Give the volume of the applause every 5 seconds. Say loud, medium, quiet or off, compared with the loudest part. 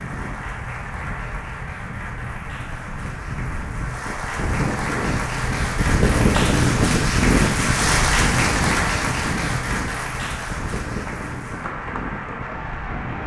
medium, loud, medium.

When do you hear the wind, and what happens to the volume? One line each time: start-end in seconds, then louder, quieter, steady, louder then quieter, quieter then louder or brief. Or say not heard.
0.0-13.2 louder then quieter.